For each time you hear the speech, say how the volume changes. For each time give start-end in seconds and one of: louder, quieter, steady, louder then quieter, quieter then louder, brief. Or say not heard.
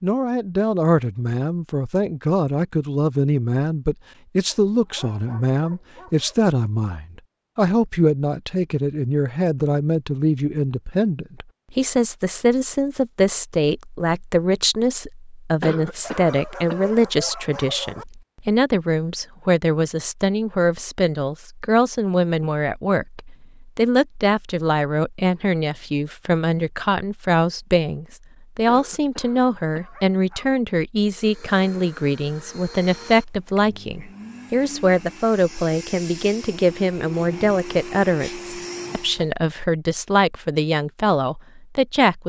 0.0-42.2 steady.